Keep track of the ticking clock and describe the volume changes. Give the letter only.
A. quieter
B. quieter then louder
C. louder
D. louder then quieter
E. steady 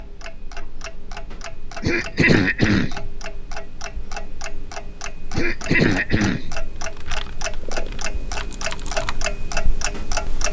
C.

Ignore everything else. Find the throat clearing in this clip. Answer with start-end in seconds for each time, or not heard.
1.8-3.1, 5.3-6.6.